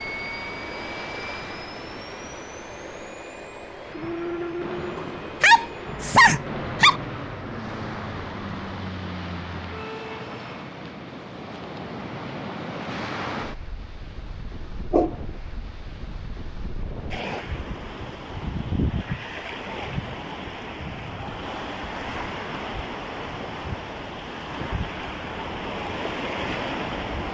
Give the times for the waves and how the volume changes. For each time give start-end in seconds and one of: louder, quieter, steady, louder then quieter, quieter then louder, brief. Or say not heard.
0.0-27.2 louder.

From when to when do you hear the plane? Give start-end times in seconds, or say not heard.
0.0-10.8.